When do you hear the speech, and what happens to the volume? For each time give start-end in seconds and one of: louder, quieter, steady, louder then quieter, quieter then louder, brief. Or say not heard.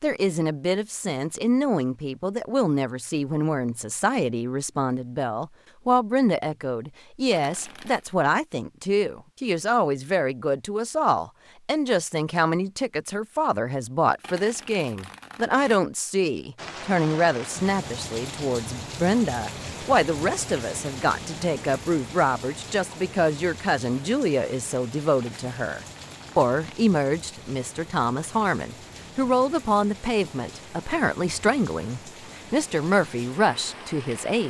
0.0-34.4 steady.